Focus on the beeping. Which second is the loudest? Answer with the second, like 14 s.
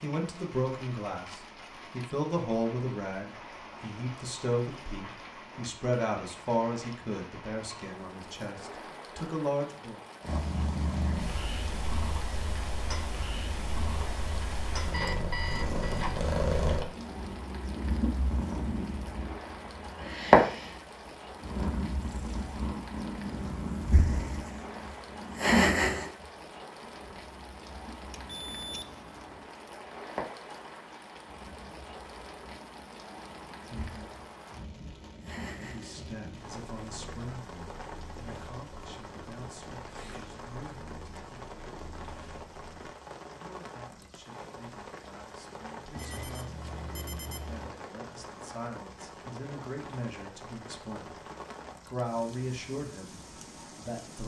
15 s.